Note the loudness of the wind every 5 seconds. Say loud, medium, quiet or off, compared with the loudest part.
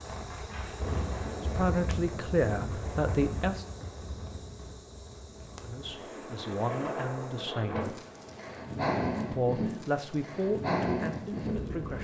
medium, loud, loud.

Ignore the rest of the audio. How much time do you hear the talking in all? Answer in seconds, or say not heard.
7 s.